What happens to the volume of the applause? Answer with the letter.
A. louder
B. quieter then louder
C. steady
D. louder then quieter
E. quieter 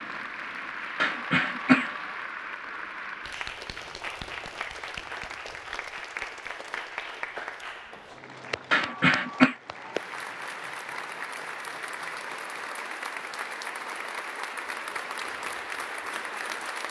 C.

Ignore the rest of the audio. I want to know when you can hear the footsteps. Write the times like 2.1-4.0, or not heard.
not heard.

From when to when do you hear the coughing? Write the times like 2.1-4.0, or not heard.
1.0-1.9, 8.7-9.6.